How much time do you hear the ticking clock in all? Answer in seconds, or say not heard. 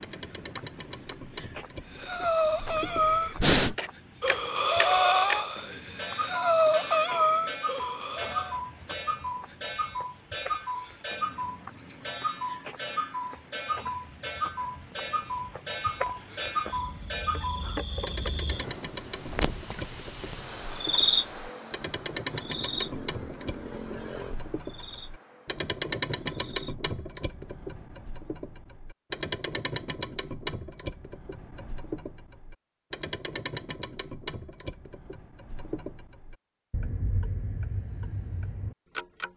39 s.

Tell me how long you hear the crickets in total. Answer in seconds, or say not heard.
27 s.